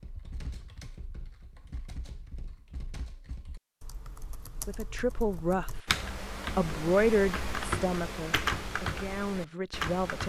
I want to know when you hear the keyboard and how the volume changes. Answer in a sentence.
The keyboard can be heard from 0.0 to 10.2 s, getting louder.